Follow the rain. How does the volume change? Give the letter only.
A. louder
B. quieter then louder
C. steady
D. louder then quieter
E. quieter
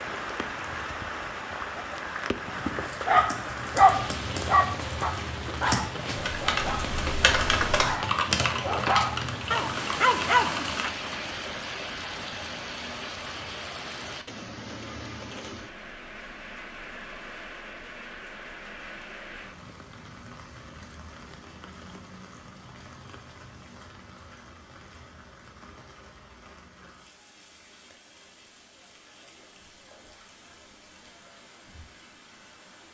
E.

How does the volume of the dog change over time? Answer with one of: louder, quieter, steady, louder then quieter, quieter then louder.
quieter then louder.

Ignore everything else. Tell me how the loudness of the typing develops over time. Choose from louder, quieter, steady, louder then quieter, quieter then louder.
louder then quieter.